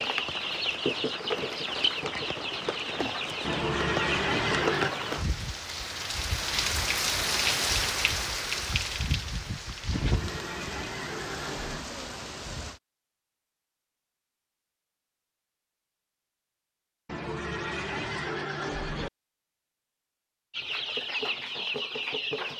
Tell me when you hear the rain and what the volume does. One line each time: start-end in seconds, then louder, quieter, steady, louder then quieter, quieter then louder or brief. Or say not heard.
0.0-12.8 louder then quieter.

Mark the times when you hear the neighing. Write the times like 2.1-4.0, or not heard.
3.4-5.0, 9.9-11.8, 17.1-19.1.